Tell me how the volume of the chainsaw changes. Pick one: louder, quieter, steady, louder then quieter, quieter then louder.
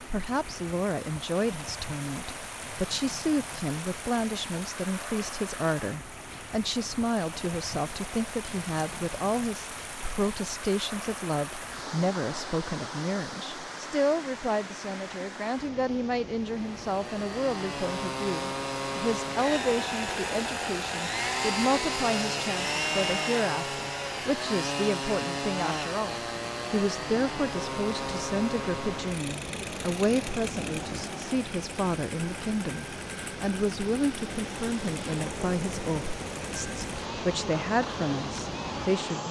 quieter.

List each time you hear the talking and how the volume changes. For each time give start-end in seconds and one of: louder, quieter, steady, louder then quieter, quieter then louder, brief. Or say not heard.
0.0-39.2 steady.